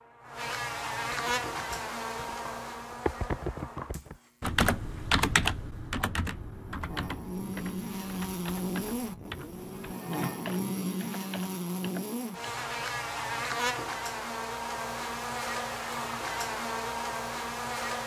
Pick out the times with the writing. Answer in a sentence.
The writing can't be heard in this clip.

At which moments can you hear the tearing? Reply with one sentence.
You can't hear the tearing here.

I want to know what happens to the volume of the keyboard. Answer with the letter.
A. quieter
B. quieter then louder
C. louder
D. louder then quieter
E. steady
D.